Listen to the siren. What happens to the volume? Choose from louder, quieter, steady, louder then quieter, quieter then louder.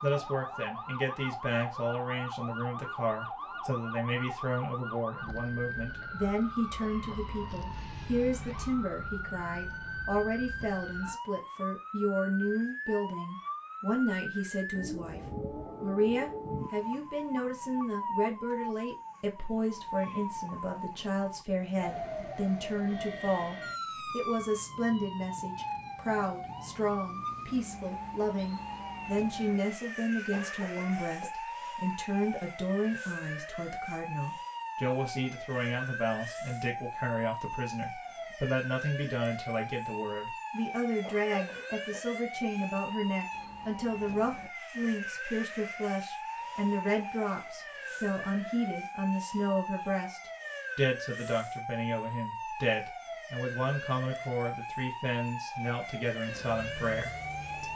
steady.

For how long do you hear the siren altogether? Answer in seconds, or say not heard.
58 s.